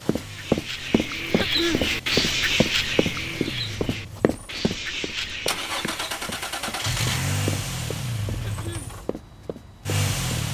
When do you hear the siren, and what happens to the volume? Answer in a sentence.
The siren can't be heard in this clip.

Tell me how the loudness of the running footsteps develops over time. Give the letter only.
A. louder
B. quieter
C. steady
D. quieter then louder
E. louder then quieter
B.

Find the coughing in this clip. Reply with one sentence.
You can hear the coughing from 1.4 to 1.9 s and from 8.4 to 8.9 s.